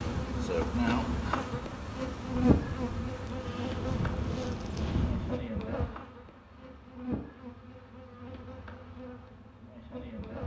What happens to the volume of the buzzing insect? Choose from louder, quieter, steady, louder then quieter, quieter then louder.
quieter.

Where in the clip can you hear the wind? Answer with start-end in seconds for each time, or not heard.
0.0-5.4.